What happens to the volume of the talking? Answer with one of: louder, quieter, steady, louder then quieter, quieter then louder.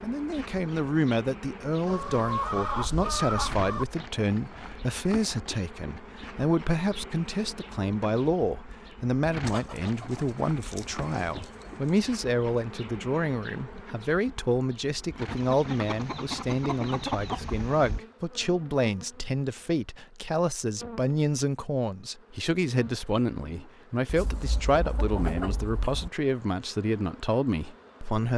steady.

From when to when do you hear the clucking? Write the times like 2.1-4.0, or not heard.
1.9-3.9, 9.4-11.9, 15.3-18.0, 24.1-26.1.